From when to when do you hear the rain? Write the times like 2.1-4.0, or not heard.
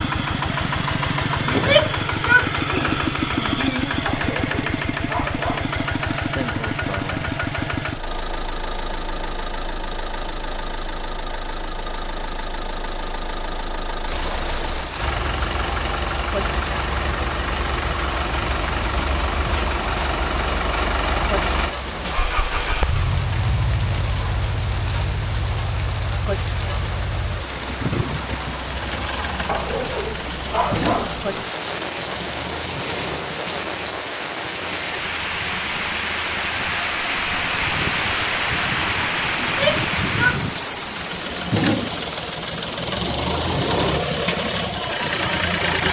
14.1-45.8.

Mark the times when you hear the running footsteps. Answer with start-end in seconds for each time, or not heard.
not heard.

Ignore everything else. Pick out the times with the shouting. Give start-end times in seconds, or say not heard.
1.4-4.0, 39.4-40.4.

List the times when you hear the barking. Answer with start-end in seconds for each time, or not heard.
4.0-5.8, 29.4-31.6.